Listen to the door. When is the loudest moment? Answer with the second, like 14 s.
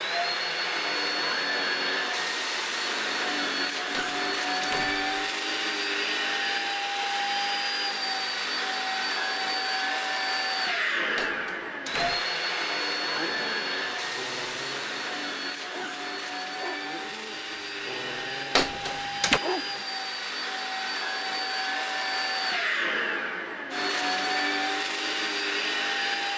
19 s.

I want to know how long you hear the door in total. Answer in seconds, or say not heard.
3 s.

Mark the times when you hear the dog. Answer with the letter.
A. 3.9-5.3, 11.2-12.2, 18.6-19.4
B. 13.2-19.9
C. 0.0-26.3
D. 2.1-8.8
B.